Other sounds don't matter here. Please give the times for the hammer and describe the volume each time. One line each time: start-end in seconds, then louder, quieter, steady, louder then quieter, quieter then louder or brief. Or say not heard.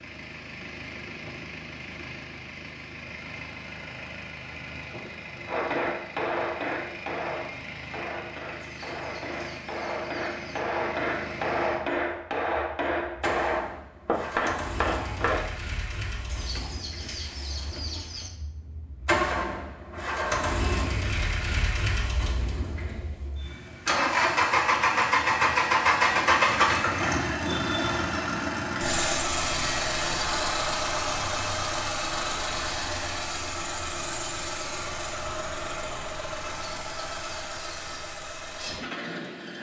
5.5-15.4 quieter then louder.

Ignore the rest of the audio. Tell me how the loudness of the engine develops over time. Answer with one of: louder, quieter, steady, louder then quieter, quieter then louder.
louder then quieter.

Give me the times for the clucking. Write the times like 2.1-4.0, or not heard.
8.6-10.6, 16.2-18.3, 36.5-38.0.